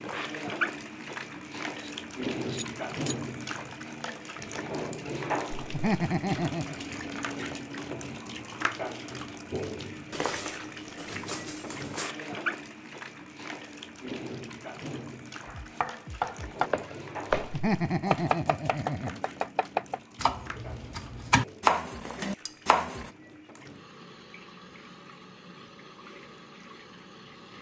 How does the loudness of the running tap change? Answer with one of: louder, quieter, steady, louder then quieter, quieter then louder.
quieter.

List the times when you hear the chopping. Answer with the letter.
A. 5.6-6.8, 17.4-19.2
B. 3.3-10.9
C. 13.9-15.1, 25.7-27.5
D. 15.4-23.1
D.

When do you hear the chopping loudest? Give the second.
22 s.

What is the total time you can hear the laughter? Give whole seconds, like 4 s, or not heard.
3 s.